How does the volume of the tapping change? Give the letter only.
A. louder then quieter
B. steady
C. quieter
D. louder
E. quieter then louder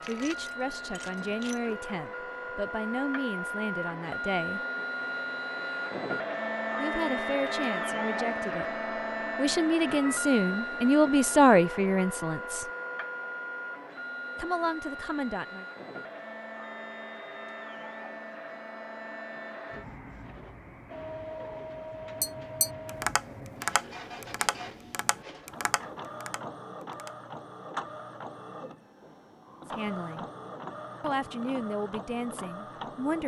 C.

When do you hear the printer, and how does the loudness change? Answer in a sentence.
The printer can be heard from 0.0 to 33.2 s, getting quieter.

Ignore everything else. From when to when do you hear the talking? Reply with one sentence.
The talking can be heard from 0.1 to 4.6 s, from 6.8 to 12.7 s, from 14.3 to 15.7 s, from 29.7 to 30.2 s and from 31.0 to 33.2 s.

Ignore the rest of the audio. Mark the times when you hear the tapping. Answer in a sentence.
You can hear the tapping from 22.2 to 27.3 s.